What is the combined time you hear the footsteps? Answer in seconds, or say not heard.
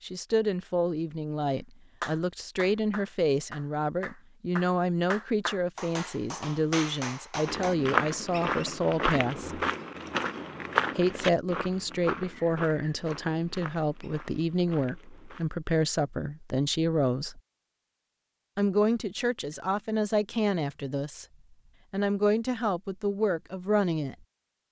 8 s.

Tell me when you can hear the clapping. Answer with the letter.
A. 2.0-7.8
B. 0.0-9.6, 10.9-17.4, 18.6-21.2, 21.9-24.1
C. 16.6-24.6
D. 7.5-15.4
A.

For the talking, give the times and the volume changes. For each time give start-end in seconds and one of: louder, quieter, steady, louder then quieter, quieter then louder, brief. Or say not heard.
0.0-9.6 steady
10.9-17.4 steady
18.6-21.2 brief
21.9-24.1 brief.